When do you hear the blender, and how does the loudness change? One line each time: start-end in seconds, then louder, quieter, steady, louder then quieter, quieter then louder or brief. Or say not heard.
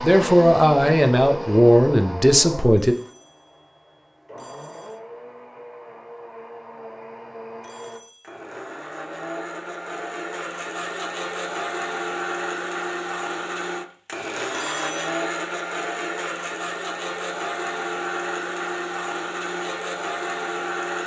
0.0-21.0 quieter then louder.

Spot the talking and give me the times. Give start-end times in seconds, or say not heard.
0.0-3.0.